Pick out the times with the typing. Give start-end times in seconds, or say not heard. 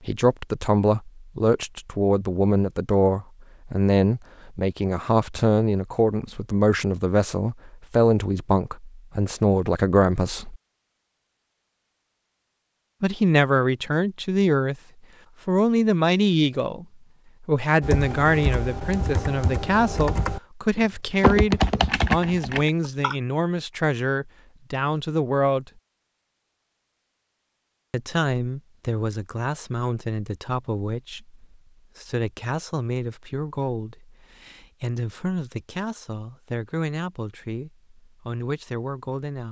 17.8-23.1.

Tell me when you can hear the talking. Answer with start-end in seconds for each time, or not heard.
0.1-10.6, 13.0-14.8, 15.4-25.7, 27.9-39.4.